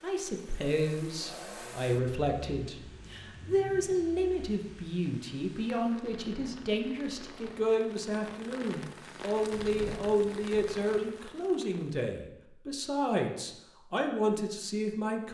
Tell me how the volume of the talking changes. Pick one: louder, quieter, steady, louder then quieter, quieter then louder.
steady.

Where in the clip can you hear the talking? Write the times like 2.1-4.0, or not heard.
0.0-15.2.